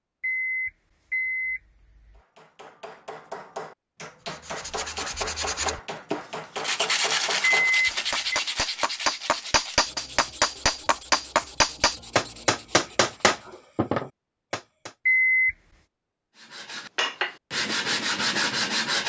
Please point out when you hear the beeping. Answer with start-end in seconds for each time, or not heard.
0.2-2.2, 7.7-8.4, 15.1-15.6.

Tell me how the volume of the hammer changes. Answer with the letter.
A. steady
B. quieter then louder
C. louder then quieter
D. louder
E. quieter
D.